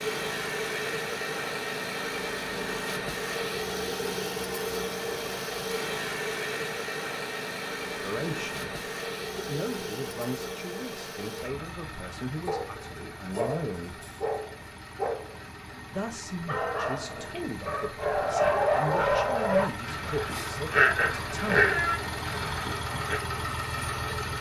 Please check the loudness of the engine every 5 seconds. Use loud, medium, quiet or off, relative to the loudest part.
loud, loud, medium, medium, loud.